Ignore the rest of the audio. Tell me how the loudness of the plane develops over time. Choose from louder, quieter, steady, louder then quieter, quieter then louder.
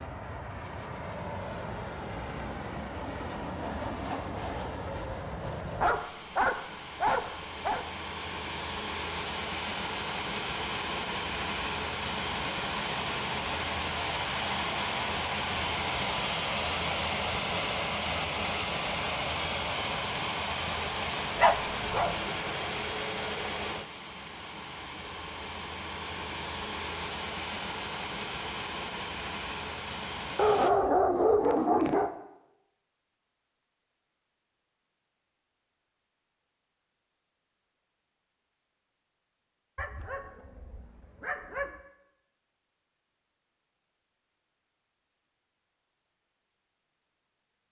louder then quieter.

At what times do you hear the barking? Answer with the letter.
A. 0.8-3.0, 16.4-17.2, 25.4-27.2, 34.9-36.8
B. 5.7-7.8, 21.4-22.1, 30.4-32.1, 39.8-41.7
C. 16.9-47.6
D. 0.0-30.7
B.